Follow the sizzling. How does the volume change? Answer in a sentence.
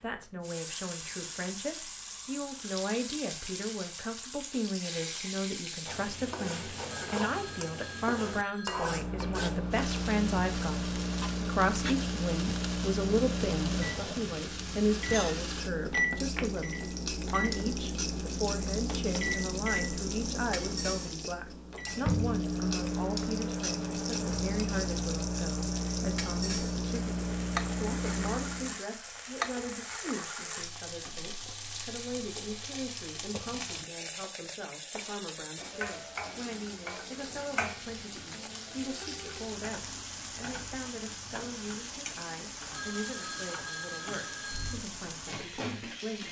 The loudness of the sizzling stays about the same.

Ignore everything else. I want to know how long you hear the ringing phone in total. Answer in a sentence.
You can hear the ringing phone for 4 seconds altogether.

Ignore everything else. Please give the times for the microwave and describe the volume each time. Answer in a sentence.
The microwave can be heard from 8.7 to 28.8 s, at a steady volume.